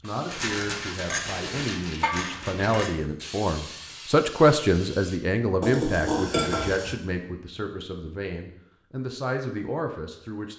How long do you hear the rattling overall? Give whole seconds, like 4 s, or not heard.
3 s.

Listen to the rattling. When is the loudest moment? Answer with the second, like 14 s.
1 s.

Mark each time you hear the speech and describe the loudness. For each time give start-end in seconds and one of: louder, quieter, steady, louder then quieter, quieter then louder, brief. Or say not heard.
0.0-10.5 louder then quieter.